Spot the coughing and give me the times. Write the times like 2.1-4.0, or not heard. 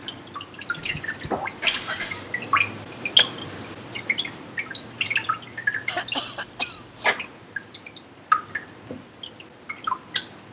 0.7-2.3, 5.8-7.2.